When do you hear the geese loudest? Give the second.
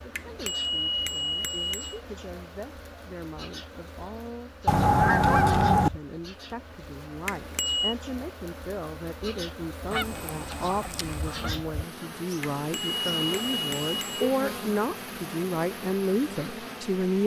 5 s.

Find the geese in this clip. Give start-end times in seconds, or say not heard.
4.7-5.9, 9.9-11.5.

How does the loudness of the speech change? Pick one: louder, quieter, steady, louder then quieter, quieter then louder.
louder.